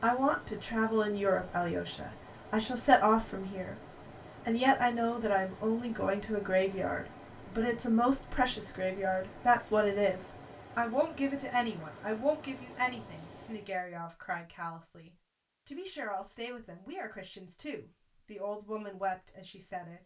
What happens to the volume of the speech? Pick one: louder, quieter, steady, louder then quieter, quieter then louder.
quieter.